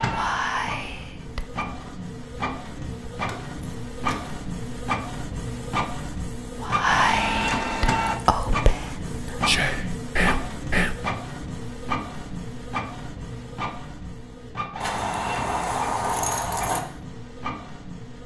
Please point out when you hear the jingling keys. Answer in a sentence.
You can hear the jingling keys from 3.2 to 4.3 s and from 14.8 to 16.8 s.